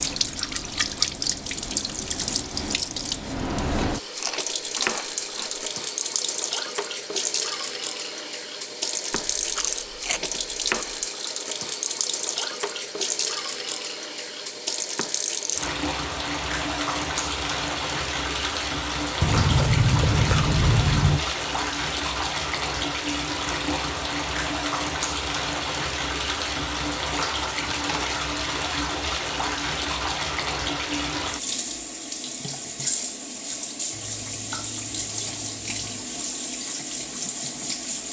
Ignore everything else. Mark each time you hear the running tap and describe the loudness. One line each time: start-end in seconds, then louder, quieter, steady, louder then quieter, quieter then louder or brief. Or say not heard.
0.0-38.0 steady.